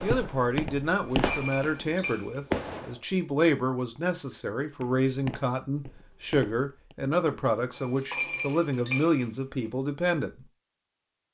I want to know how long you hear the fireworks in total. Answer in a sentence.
You can hear the fireworks for 3 seconds altogether.